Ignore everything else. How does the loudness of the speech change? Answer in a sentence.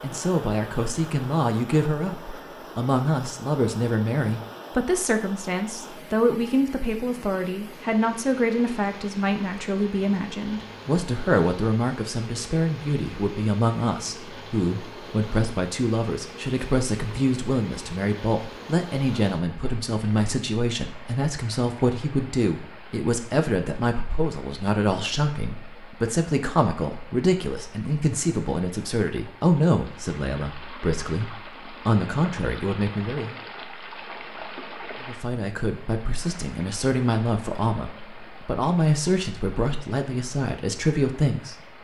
The volume of the speech stays about the same.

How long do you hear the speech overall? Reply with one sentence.
The speech can be heard for 40 seconds in total.